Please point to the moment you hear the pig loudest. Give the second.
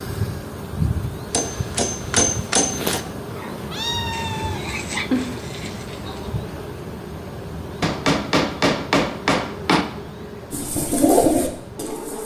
5 s.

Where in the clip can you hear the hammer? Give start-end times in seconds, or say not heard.
1.3-3.0, 7.8-9.8.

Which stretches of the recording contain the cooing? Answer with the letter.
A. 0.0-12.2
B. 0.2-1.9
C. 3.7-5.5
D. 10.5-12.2
D.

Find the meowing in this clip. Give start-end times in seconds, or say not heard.
3.7-5.5.